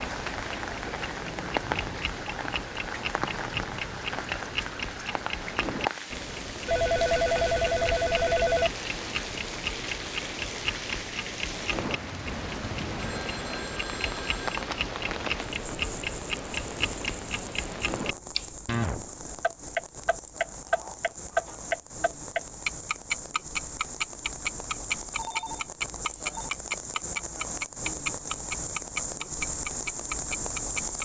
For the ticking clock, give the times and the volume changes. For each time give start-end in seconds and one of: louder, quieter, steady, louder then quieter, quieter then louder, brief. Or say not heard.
0.0-30.9 louder.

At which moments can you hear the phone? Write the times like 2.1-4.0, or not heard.
6.7-8.7, 13.0-14.6, 25.1-26.5.